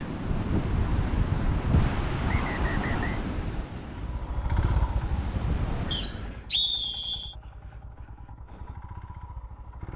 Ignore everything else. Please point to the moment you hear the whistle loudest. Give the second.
7 s.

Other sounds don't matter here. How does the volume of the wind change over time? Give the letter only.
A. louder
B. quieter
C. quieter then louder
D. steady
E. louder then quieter
C.